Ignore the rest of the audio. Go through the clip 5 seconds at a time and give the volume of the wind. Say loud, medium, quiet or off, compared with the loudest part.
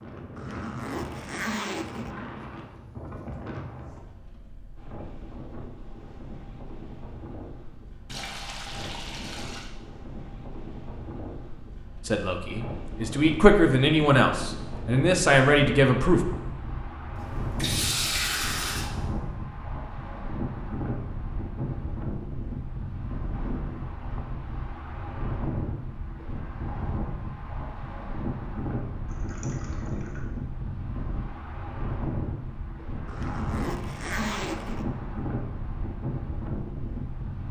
medium, medium, medium, loud, loud, loud, loud, loud.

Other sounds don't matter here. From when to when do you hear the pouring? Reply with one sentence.
You can hear the pouring from 8.1 to 9.7 s, from 17.1 to 18.9 s and from 29.1 to 30.2 s.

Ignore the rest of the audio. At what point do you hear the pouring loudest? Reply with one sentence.
The loudest moment of the pouring is at 18 seconds.